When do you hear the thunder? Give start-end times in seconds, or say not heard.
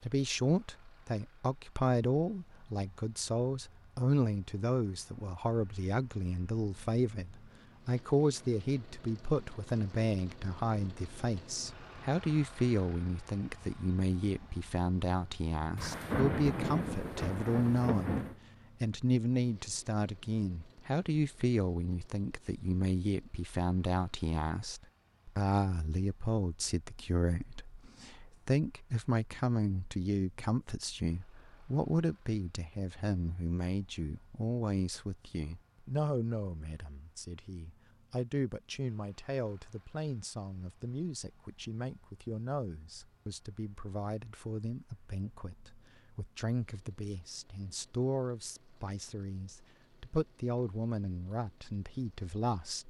15.8-18.4.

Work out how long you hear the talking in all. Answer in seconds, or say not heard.
52 s.